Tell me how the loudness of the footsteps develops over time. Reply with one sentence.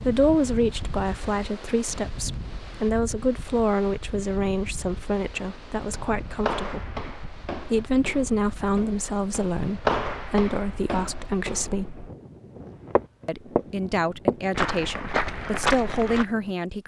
The loudness of the footsteps goes down, then up.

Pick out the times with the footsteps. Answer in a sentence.
The footsteps can be heard from 5.3 to 16.2 s.